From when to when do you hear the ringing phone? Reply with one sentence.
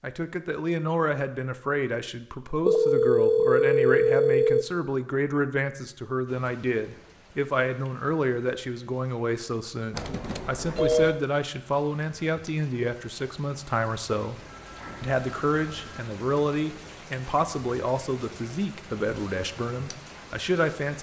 The ringing phone can be heard from 2.6 to 4.7 s, from 9.9 to 11.2 s and from 14.3 to 16.1 s.